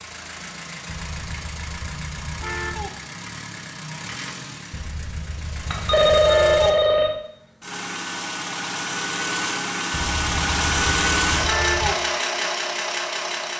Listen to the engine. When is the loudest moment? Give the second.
11 s.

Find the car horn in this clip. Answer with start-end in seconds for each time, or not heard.
0.8-2.9, 4.7-6.8, 9.9-11.9.